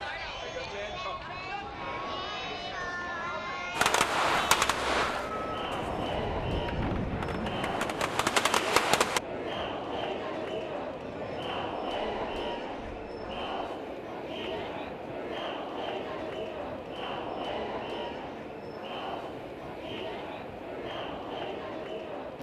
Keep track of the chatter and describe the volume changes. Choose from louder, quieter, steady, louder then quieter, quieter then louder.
steady.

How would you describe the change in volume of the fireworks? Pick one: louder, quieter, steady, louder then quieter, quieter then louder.
quieter then louder.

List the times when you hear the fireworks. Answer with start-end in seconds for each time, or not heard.
3.8-9.2.